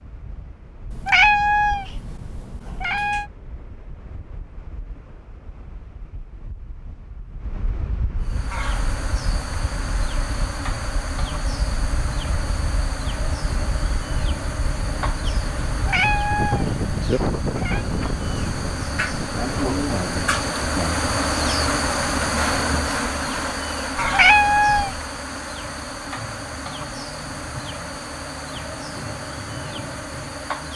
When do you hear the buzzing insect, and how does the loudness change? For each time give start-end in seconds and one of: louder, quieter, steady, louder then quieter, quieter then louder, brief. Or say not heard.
8.2-30.7 louder then quieter.